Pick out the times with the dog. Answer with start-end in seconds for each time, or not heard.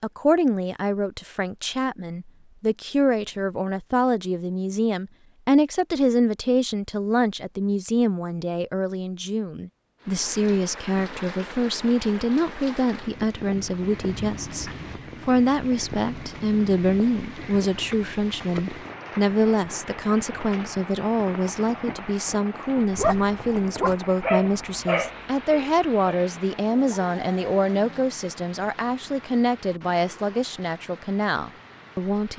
22.9-28.1.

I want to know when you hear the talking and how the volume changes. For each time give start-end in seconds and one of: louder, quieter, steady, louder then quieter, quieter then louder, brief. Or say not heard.
0.0-32.3 steady.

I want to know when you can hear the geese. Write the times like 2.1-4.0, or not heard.
not heard.